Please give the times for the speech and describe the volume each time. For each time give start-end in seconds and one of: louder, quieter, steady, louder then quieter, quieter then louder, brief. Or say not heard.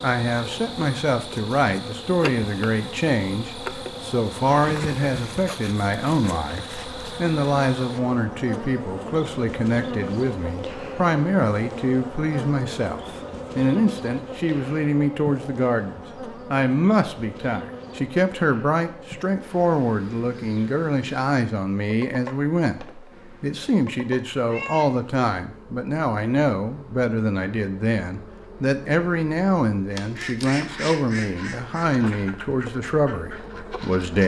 0.0-34.2 steady.